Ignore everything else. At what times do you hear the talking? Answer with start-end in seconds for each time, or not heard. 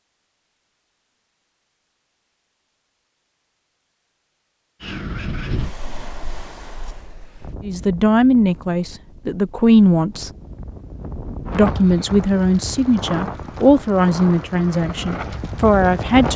7.6-10.3, 11.5-16.3.